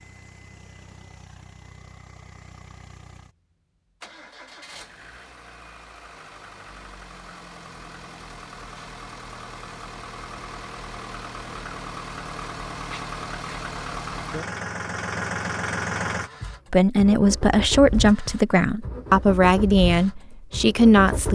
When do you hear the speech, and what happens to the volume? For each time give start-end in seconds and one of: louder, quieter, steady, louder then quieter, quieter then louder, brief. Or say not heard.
16.7-21.3 steady.